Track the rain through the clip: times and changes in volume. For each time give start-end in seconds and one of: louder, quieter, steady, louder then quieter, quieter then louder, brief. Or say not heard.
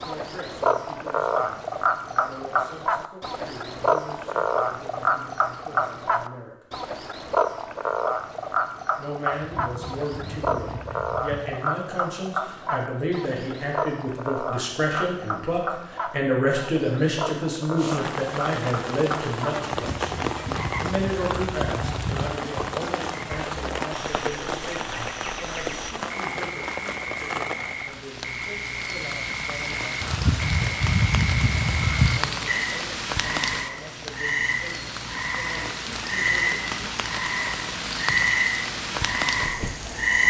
17.8-40.2 steady.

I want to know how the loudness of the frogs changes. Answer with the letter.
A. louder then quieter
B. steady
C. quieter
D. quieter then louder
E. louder
D.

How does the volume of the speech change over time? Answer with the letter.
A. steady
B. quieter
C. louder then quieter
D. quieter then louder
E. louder
C.